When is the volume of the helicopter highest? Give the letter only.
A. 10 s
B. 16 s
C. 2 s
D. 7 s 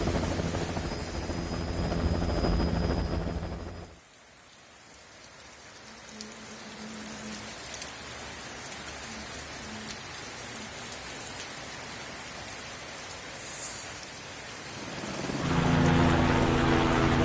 B.